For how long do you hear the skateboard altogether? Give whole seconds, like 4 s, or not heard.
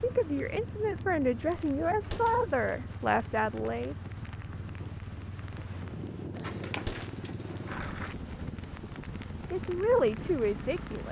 2 s.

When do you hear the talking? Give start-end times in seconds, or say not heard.
0.0-4.0, 9.5-11.0.